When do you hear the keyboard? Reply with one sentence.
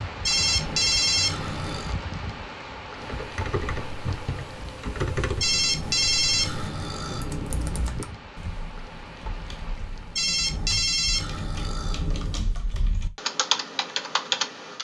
The keyboard can be heard from 3.0 to 14.7 s.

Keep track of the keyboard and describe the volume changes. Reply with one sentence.
The volume of the keyboard goes down, then up.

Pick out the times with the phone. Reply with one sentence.
You can hear the phone from 0.2 to 1.9 s, from 5.4 to 7.9 s and from 10.2 to 12.6 s.